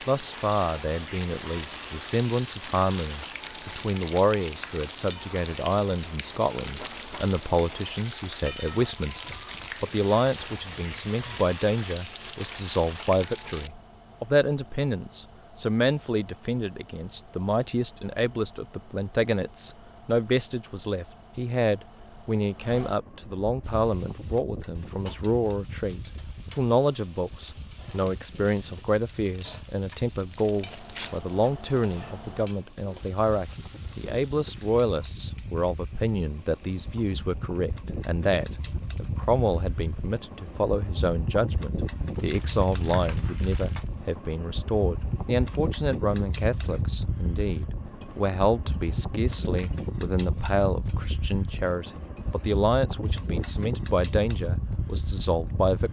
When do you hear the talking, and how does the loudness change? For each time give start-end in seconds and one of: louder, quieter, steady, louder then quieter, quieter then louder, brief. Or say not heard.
0.1-55.8 steady.